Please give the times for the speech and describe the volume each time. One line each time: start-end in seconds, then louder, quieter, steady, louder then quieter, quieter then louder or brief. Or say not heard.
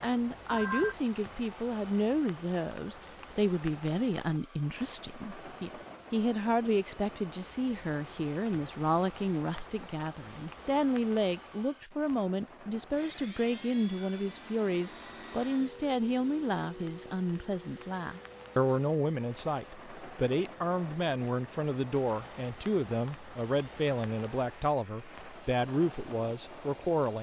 0.0-27.1 steady.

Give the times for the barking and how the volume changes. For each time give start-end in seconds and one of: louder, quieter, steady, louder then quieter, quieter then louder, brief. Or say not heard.
not heard.